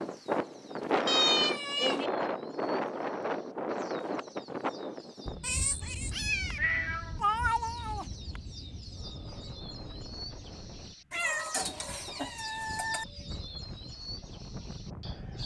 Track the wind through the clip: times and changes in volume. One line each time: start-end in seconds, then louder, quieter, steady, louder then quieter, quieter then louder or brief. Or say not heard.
0.0-15.4 quieter.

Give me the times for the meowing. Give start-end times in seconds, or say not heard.
1.1-2.1, 5.4-8.1, 11.1-13.1.